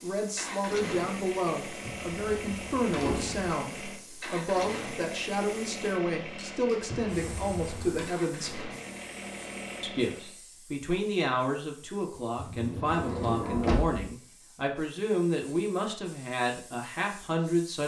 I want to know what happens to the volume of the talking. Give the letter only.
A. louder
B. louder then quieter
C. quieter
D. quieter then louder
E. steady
E.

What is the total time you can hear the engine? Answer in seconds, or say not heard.
10 s.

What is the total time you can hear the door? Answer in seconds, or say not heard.
5 s.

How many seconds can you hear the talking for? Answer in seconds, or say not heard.
17 s.